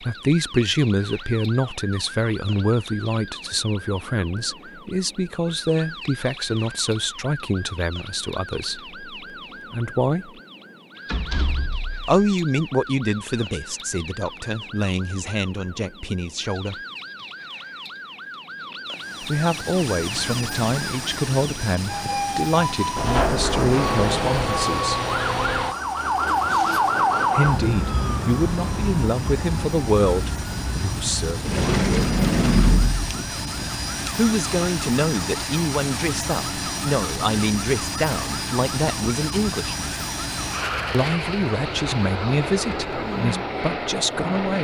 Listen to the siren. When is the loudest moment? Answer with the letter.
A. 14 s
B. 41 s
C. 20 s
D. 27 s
D.